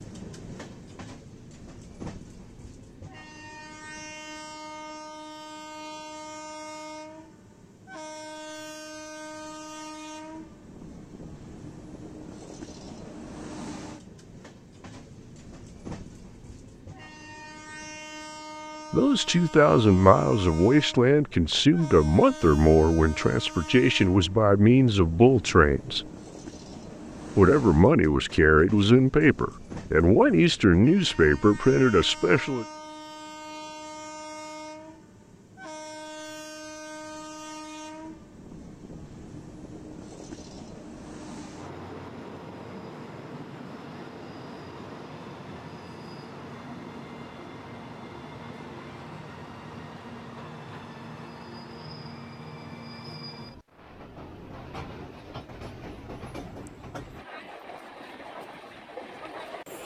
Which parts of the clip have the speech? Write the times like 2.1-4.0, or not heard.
18.9-26.0, 27.4-32.6.